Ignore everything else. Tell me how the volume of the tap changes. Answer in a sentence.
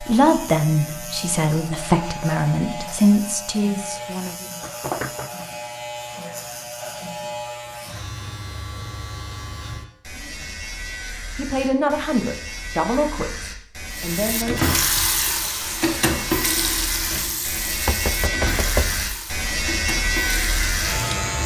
The loudness of the tap goes down.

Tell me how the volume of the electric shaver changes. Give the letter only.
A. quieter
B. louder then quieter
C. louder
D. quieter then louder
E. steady
C.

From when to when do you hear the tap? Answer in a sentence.
The tap can be heard from 13.9 to 21.4 s.